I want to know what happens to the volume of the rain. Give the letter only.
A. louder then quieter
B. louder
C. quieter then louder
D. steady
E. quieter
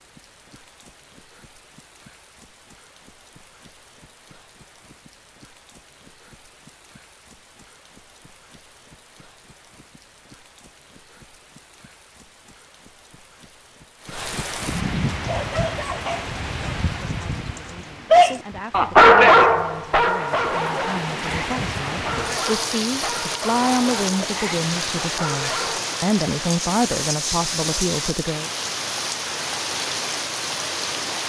B.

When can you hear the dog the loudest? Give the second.
19 s.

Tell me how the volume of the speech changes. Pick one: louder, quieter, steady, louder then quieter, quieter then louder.
louder.